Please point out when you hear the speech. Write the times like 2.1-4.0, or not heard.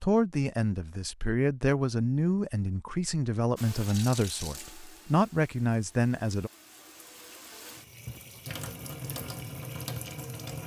0.0-6.5.